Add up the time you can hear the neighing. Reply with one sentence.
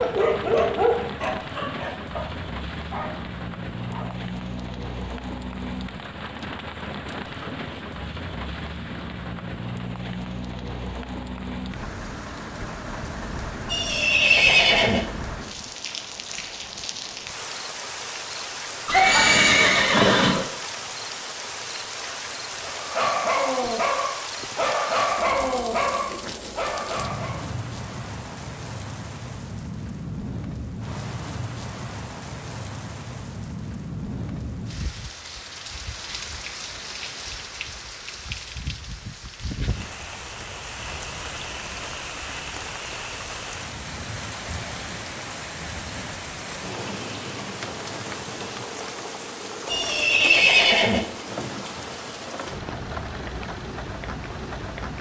The neighing can be heard for 4 seconds in total.